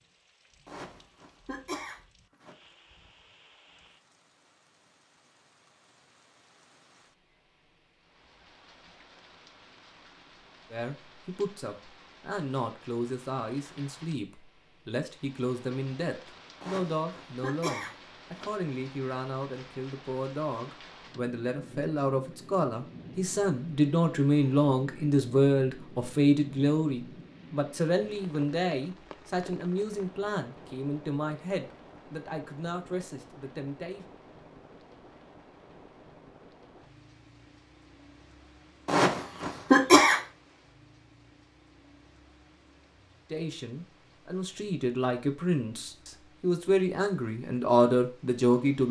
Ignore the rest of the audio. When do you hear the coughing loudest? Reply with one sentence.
The loudest moment of the coughing is at 40 seconds.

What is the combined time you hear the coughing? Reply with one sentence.
The coughing can be heard for 5 seconds in total.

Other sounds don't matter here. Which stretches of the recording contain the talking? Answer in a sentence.
You can hear the talking from 10.7 to 34.0 s and from 43.3 to 48.8 s.